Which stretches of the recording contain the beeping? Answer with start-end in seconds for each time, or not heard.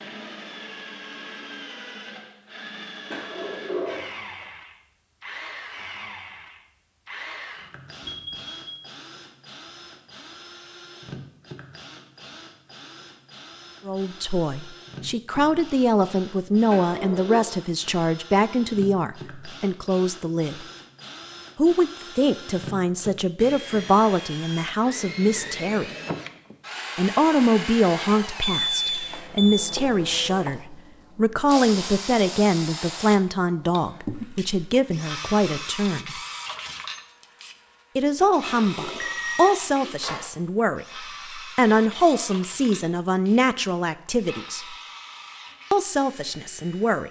8.0-8.8, 28.4-29.6, 38.9-39.5.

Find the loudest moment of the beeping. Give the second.
29 s.